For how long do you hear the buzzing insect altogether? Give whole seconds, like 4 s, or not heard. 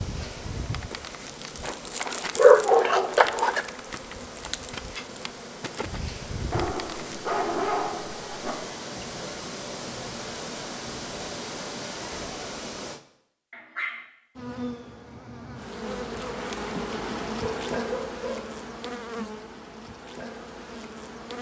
14 s.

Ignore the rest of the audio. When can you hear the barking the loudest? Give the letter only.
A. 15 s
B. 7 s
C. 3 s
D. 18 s
C.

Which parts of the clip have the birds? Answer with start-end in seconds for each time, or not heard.
not heard.